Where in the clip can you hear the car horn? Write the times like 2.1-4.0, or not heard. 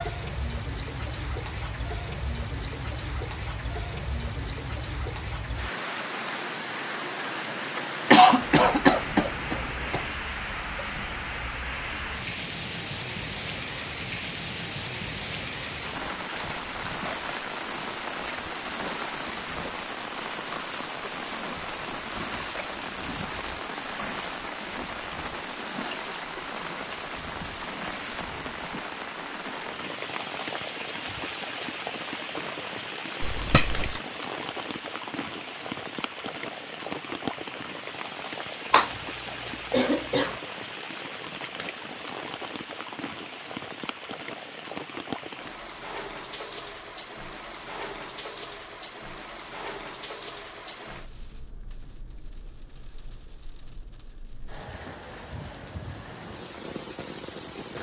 not heard.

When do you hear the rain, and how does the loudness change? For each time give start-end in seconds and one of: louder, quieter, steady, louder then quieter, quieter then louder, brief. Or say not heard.
0.0-57.7 quieter.